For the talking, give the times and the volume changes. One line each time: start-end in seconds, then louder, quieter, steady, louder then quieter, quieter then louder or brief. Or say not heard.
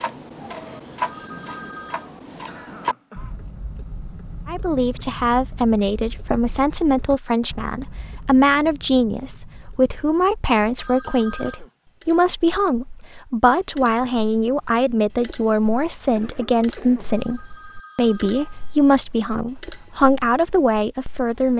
4.5-21.5 steady.